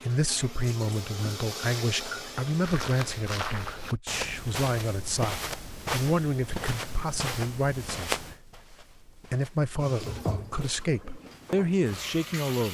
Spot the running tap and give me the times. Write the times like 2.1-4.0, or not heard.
0.0-4.0, 9.8-12.6.